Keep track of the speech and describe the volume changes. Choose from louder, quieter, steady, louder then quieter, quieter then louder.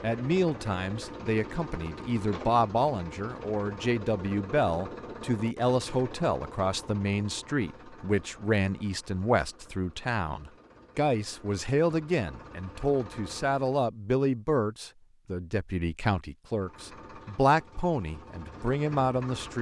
steady.